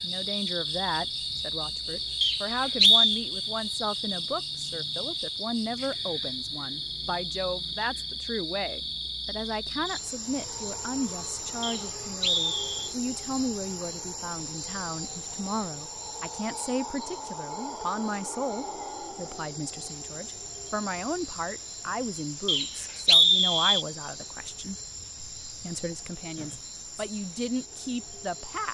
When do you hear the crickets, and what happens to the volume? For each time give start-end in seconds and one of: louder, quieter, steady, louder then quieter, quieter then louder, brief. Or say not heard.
0.0-28.6 quieter.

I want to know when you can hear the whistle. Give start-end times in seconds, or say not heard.
2.2-3.2, 11.6-12.9, 22.4-23.9.